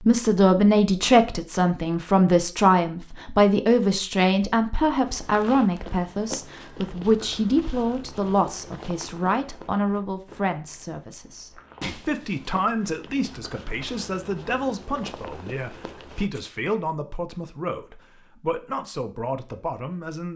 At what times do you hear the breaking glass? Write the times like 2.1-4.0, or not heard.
11.8-12.6.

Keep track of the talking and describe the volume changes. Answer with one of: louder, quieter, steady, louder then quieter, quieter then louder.
quieter.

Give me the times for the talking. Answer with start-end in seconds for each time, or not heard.
0.1-20.3.